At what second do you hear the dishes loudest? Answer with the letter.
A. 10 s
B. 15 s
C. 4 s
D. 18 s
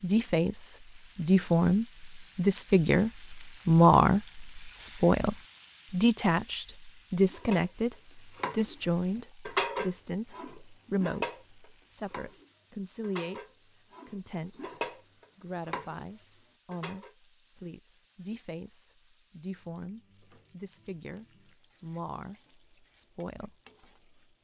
A.